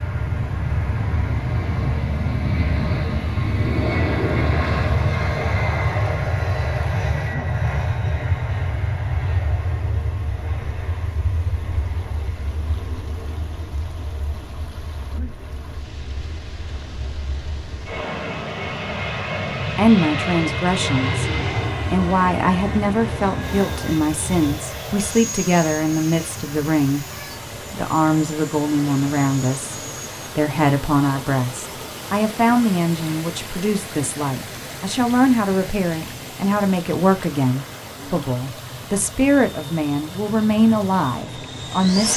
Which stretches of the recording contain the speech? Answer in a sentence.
You can hear the speech from 19.6 to 27.1 s, from 27.7 to 29.8 s and from 30.4 to 42.1 s.